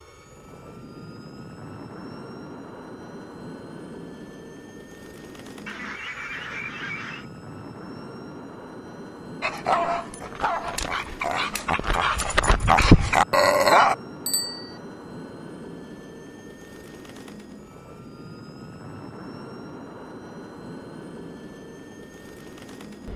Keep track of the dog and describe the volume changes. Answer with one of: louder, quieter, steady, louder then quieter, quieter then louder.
louder.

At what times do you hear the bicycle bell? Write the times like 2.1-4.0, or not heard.
14.2-14.8.